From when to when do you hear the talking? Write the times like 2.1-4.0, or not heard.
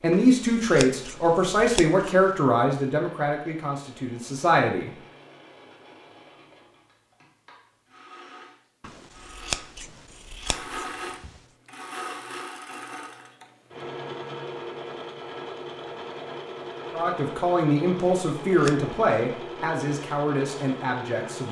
0.0-4.9, 16.9-21.4.